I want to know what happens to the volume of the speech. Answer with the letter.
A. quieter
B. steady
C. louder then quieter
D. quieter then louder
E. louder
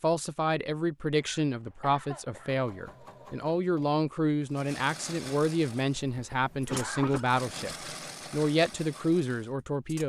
B.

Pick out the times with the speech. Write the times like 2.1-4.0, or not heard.
0.0-10.0.